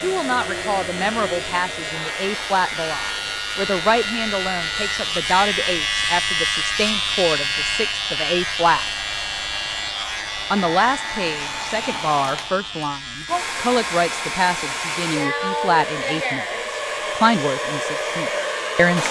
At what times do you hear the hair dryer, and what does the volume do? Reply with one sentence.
The hair dryer can be heard from 0.0 to 19.0 s, getting quieter then louder.